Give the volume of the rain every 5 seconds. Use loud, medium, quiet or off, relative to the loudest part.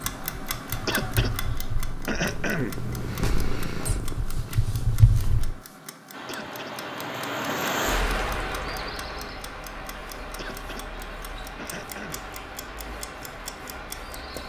off, loud, medium.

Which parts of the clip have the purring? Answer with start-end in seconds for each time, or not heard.
0.0-5.5.